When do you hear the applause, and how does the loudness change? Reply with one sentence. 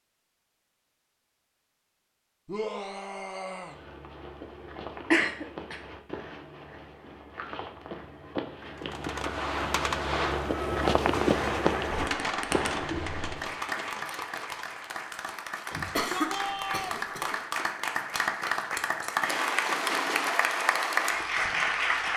The applause can be heard from 11.2 to 22.1 s, getting louder.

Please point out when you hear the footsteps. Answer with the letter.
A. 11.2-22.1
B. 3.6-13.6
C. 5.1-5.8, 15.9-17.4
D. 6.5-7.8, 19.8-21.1
B.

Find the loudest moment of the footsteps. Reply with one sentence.
The loudest moment of the footsteps is at 11 seconds.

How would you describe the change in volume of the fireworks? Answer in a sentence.
The volume of the fireworks goes down.